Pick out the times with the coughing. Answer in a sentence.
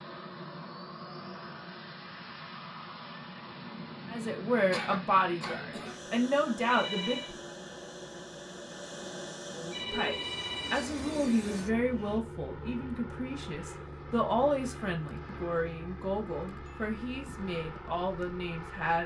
You can hear the coughing from 4.7 to 6.0 s.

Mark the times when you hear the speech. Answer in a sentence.
You can hear the speech from 4.0 to 7.3 s and from 9.6 to 19.0 s.